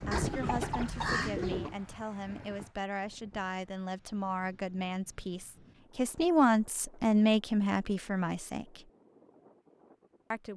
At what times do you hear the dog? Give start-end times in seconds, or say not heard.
not heard.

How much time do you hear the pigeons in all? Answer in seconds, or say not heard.
2 s.